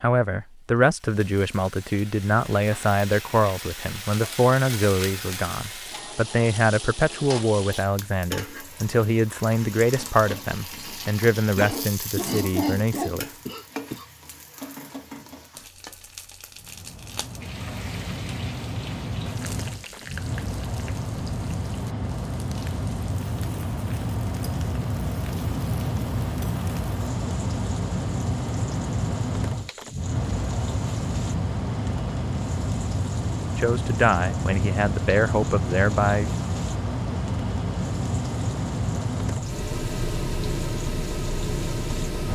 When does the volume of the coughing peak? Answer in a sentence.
The volume of the coughing peaks at 13 seconds.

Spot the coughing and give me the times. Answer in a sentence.
The coughing can be heard from 11.6 to 14.1 s.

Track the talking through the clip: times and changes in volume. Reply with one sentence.
The talking can be heard from 0.0 to 13.2 s, at a steady volume; and briefly from 33.5 to 36.3 s.